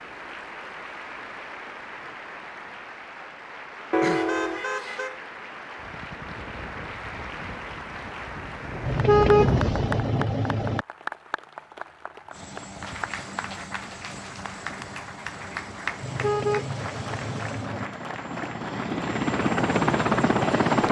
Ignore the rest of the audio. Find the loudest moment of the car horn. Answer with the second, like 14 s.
9 s.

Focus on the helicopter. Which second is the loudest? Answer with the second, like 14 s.
20 s.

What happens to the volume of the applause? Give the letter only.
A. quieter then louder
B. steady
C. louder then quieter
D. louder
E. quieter
B.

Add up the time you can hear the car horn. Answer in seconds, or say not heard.
5 s.